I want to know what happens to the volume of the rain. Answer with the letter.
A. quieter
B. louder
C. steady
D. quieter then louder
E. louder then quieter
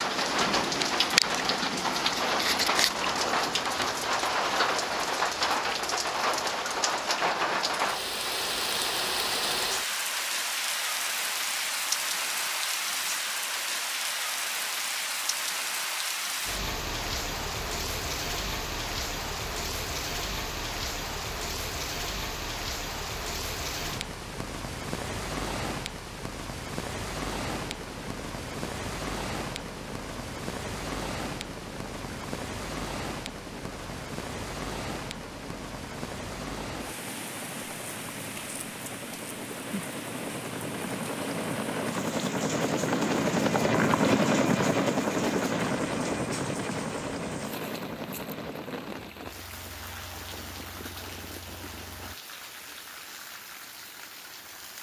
A.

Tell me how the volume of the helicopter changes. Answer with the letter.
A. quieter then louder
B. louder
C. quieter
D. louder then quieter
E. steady
D.